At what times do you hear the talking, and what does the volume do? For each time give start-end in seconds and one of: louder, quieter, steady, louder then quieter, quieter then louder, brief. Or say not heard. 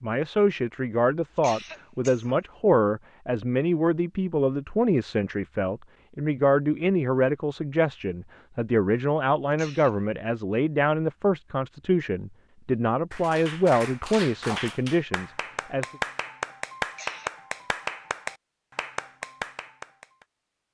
0.0-15.8 steady.